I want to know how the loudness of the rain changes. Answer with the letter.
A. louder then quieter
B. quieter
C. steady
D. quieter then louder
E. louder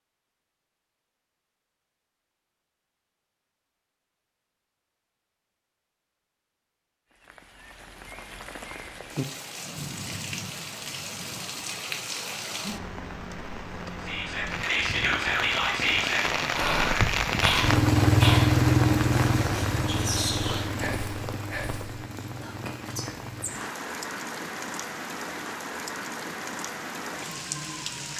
A.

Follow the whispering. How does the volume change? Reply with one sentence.
The volume of the whispering goes down.